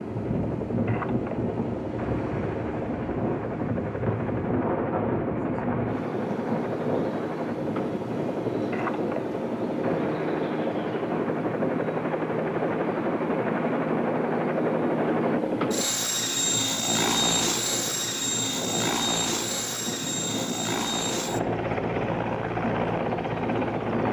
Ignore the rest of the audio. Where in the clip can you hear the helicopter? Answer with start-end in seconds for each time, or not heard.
0.0-24.0.